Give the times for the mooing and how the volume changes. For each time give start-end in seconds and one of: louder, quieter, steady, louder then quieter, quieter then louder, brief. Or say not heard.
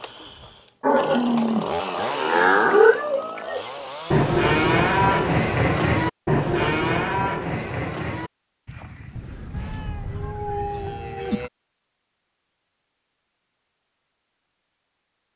0.8-11.5 quieter.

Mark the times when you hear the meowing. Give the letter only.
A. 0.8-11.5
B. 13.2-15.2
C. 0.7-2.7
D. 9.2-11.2
D.